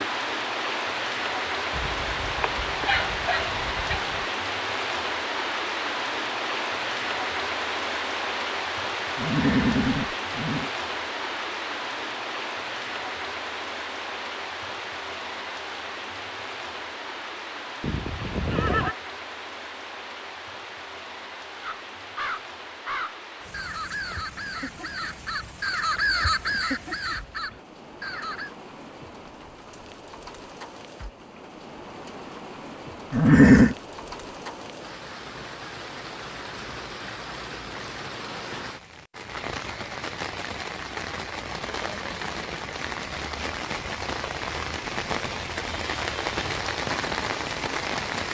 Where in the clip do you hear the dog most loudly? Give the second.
3 s.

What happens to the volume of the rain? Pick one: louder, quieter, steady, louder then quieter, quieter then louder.
quieter then louder.